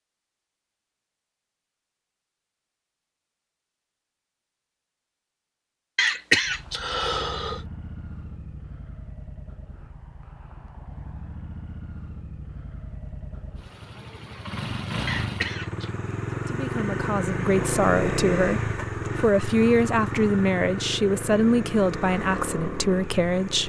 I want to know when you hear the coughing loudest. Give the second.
6 s.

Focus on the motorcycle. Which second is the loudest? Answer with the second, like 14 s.
18 s.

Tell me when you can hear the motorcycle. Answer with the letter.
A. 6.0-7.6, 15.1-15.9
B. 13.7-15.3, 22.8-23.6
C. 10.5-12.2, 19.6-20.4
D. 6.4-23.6
D.